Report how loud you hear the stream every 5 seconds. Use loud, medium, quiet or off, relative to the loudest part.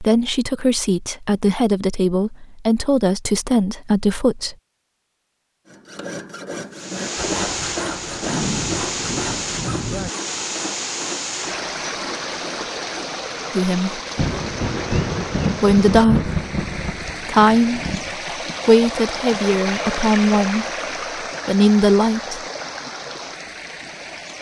off, loud, loud, loud, loud.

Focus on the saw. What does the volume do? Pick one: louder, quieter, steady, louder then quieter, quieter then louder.
quieter.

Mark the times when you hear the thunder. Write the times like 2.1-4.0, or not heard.
7.2-10.1, 14.2-18.1.